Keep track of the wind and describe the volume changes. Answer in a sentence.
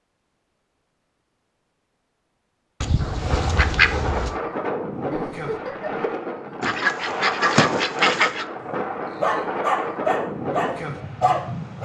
The volume of the wind stays about the same.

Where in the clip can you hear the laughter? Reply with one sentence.
You can hear the laughter from 5.1 to 6.0 s.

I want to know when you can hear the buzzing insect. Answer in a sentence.
The buzzing insect can't be heard in this clip.